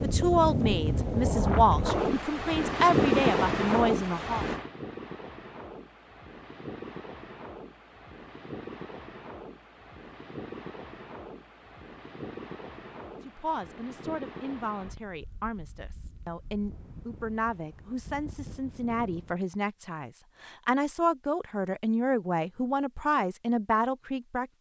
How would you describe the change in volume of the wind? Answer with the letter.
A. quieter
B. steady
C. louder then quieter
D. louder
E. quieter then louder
A.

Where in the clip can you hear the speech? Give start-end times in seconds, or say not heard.
0.0-4.5, 13.2-24.5.